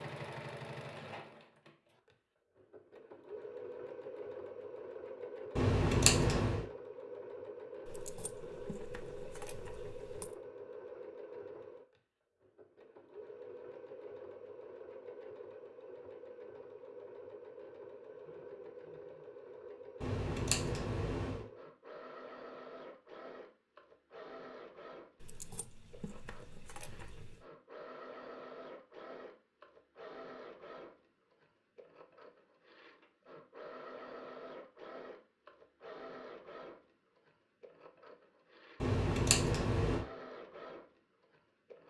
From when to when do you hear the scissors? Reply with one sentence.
The scissors can be heard from 5.5 to 6.6 s, from 20.0 to 21.4 s and from 38.8 to 40.0 s.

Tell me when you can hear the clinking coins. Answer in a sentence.
You can hear the clinking coins from 7.8 to 10.3 s and from 25.2 to 27.4 s.